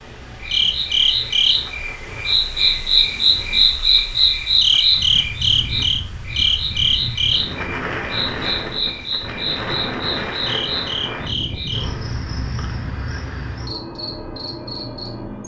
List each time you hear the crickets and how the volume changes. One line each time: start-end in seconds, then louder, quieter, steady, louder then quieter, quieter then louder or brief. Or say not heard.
0.0-15.4 quieter.